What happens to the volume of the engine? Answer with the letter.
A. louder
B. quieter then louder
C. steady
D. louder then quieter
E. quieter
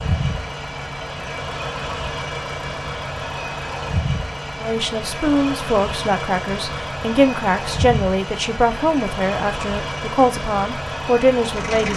C.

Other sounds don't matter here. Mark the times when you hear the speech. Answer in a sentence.
The speech can be heard from 4.6 to 11.9 s.